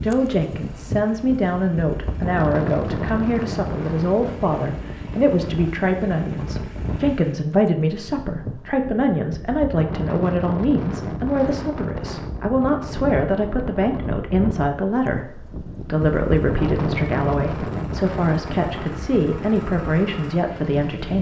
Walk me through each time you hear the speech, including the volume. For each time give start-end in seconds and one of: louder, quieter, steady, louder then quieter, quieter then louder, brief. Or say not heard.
0.0-21.1 steady.